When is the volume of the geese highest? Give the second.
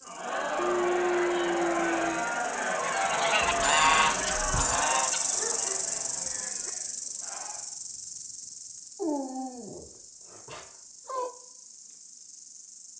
4 s.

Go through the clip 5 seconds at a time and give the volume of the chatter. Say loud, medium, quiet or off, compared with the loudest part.
loud, quiet, off.